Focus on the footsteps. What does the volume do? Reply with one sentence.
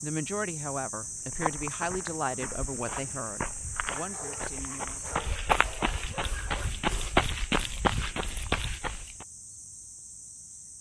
The loudness of the footsteps goes up.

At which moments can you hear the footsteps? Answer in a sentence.
You can hear the footsteps from 1.3 to 9.2 s.